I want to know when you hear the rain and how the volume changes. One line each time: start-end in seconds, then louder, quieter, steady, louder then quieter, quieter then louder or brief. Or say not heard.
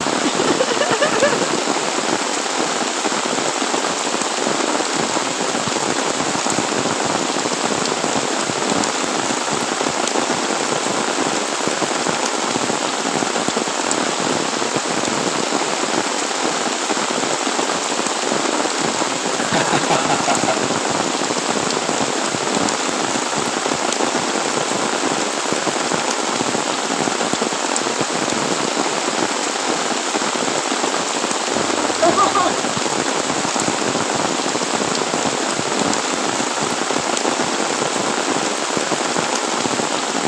0.0-40.2 steady.